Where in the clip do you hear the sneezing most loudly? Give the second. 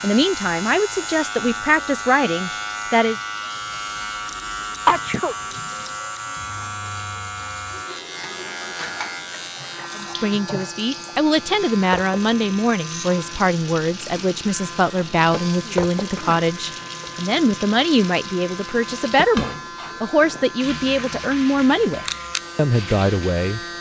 5 s.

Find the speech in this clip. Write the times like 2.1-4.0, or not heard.
0.0-3.2, 9.9-23.6.